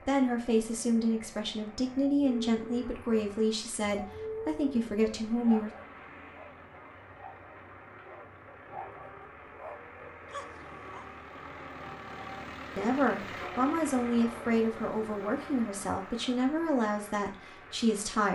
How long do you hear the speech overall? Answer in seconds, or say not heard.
11 s.